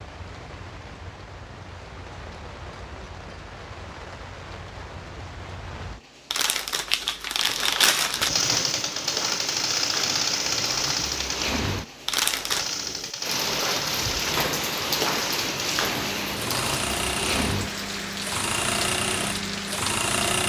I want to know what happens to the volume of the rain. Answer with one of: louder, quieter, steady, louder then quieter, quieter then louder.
louder.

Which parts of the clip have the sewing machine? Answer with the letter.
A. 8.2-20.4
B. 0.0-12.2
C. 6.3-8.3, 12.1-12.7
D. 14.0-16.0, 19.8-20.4
A.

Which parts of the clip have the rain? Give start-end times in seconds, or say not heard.
0.0-20.1.